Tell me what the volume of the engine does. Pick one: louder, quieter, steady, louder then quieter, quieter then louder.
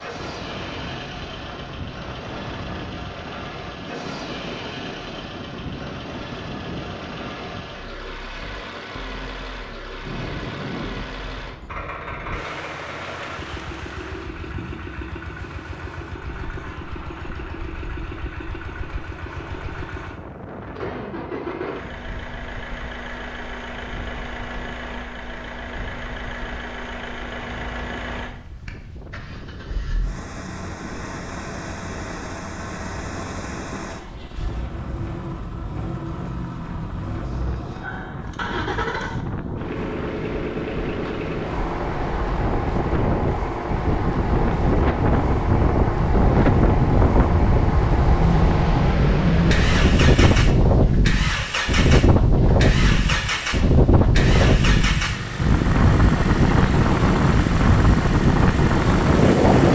louder.